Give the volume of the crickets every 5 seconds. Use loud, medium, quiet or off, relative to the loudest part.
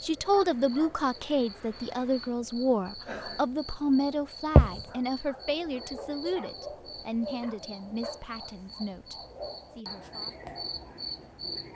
loud, medium, medium.